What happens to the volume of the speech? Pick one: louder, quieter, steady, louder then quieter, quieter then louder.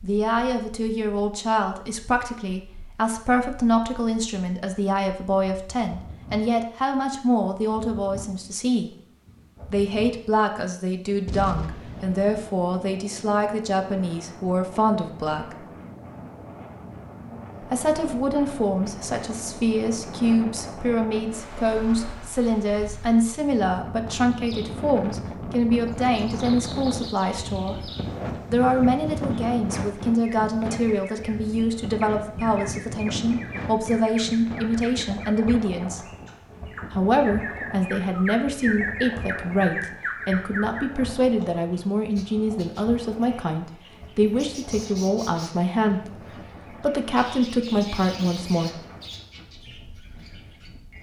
steady.